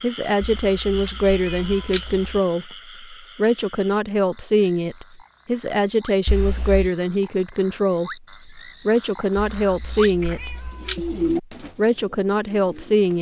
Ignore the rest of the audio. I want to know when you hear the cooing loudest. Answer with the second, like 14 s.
11 s.